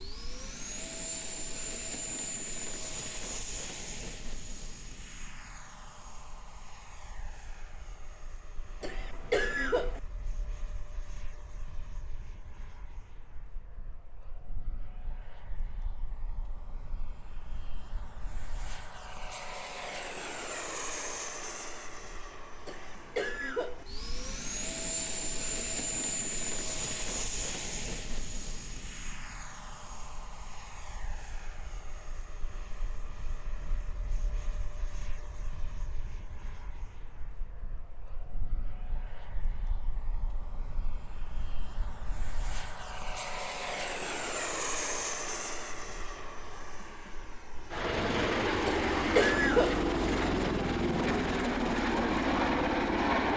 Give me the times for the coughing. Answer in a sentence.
The coughing can be heard from 8.8 to 10.0 s, from 22.6 to 23.9 s and from 48.6 to 49.9 s.